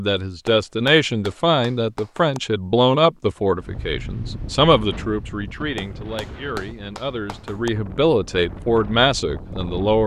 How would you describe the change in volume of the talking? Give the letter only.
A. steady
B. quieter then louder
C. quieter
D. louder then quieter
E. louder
B.